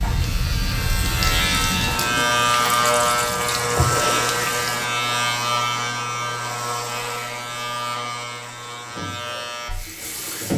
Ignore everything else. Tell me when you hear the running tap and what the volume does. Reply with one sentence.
You can hear the running tap from 0.0 to 4.8 s, getting louder; and briefly from 8.7 to 10.5 s.